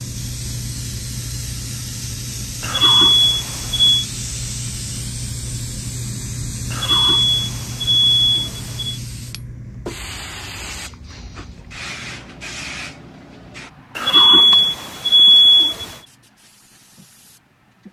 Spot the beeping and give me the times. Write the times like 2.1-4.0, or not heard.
2.6-4.0, 6.7-9.0, 13.9-15.9.